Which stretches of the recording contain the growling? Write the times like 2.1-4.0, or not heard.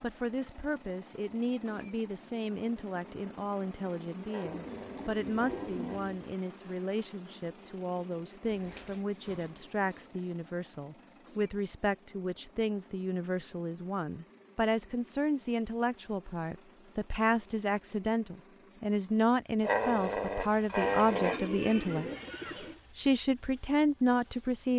4.2-6.0, 19.6-21.5.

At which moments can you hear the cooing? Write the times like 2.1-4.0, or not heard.
4.5-6.2, 8.4-10.2, 20.8-22.8.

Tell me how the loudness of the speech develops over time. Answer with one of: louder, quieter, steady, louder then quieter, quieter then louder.
louder.